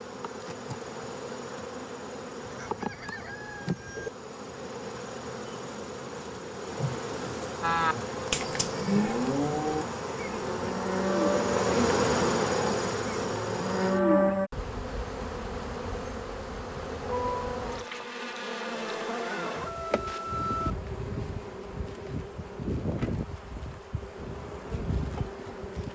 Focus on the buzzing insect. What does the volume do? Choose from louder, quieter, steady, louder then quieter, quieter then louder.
louder then quieter.